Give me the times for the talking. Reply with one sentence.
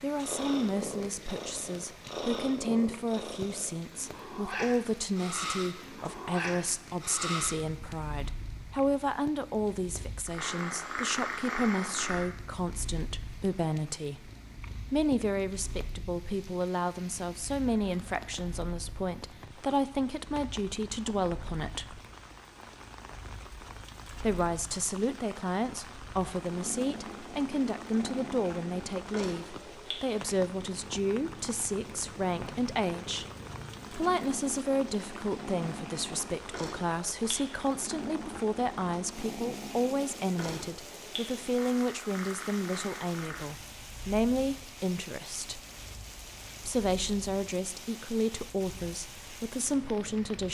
The talking can be heard from 0.0 to 14.3 s, from 14.9 to 22.0 s, from 24.1 to 33.2 s, from 33.9 to 45.6 s and from 46.6 to 50.5 s.